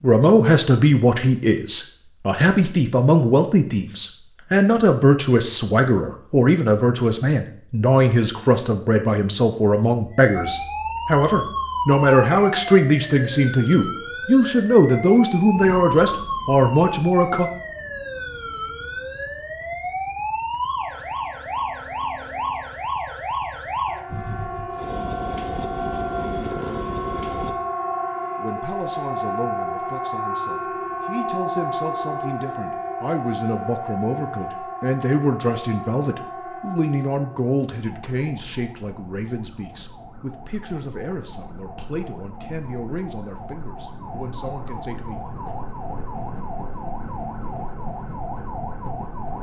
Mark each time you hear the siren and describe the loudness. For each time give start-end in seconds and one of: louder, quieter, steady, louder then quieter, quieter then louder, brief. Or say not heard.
10.1-49.3 quieter.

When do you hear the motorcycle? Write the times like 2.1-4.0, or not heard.
24.1-27.6.